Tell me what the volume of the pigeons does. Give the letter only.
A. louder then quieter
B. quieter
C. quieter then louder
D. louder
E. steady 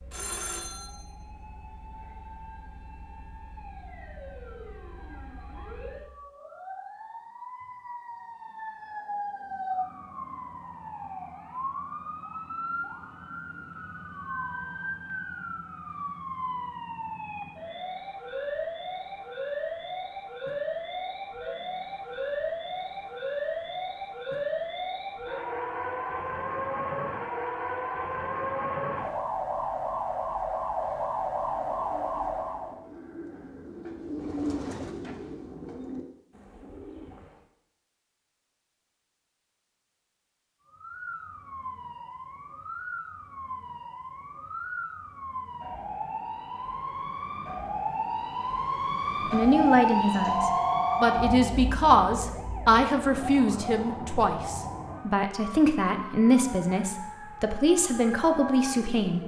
A.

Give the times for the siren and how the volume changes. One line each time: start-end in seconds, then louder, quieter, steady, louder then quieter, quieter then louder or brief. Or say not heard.
0.0-32.8 louder
40.6-59.2 louder then quieter.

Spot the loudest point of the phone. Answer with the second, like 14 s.
51 s.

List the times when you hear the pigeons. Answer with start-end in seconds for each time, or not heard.
31.5-37.4.